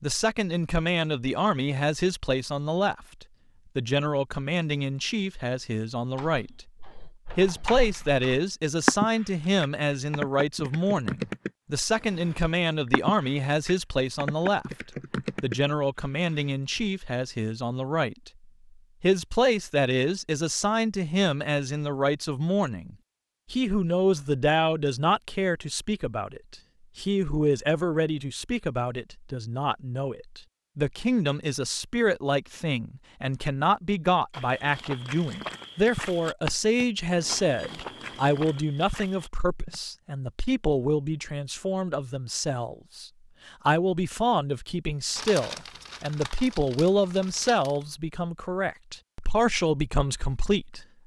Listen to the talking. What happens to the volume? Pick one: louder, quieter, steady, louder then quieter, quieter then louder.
steady.